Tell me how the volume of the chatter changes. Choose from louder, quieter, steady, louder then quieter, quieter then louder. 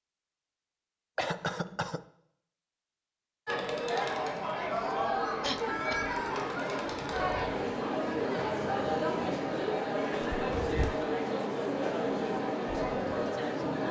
steady.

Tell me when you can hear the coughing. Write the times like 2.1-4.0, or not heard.
1.1-2.0, 5.4-6.0, 10.1-11.1.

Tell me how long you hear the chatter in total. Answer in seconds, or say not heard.
10 s.